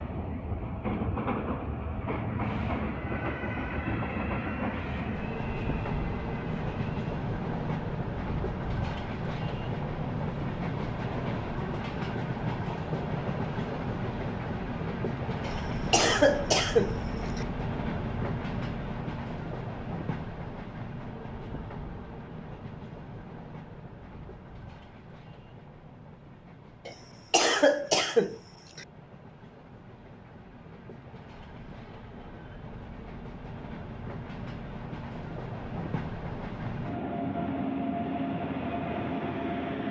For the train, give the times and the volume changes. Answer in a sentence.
The train can be heard from 0.0 to 39.8 s, getting quieter then louder.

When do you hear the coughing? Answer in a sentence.
The coughing can be heard from 15.4 to 17.4 s and from 26.9 to 28.9 s.